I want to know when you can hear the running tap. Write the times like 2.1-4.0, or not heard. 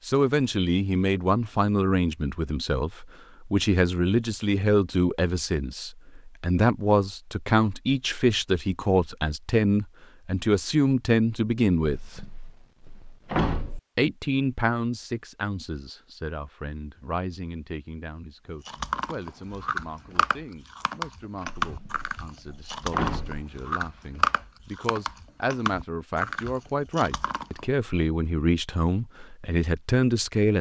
not heard.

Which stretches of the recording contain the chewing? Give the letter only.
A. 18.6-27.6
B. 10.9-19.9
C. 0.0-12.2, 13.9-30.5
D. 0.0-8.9
A.